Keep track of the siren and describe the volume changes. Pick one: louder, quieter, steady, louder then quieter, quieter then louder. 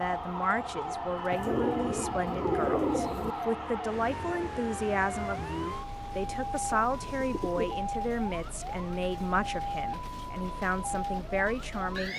steady.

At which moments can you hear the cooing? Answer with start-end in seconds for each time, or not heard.
1.3-3.4, 6.5-7.8.